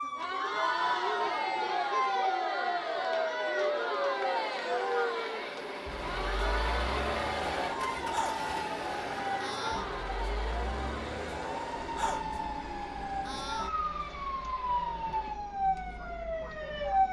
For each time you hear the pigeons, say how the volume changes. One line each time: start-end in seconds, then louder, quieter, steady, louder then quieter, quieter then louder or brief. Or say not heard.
not heard.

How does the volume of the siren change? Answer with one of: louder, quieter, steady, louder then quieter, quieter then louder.
steady.